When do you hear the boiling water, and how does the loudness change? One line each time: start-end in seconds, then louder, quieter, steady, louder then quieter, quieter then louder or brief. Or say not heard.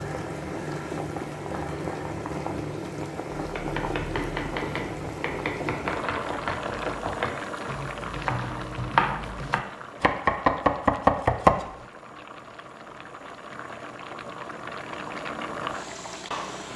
0.0-16.7 quieter then louder.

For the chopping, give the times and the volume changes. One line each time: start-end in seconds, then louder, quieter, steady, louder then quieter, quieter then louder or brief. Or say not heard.
3.4-11.7 louder.